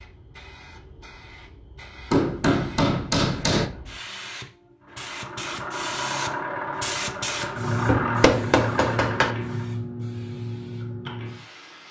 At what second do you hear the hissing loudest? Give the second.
8 s.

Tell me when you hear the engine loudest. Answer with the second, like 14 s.
8 s.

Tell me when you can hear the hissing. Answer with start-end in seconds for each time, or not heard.
0.0-11.8.